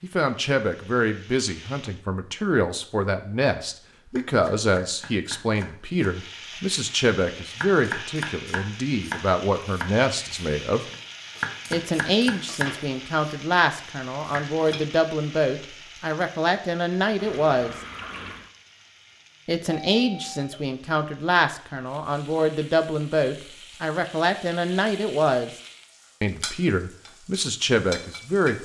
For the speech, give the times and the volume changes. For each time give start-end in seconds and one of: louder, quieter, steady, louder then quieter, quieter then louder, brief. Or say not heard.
0.0-10.8 steady
11.7-17.8 steady
19.4-25.5 steady
26.2-28.5 brief.